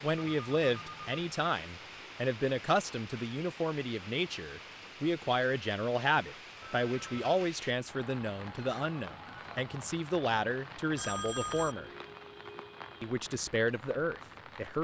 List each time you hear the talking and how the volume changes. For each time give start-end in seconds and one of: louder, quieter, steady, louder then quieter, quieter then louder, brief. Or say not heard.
0.0-11.9 steady
13.0-14.7 brief.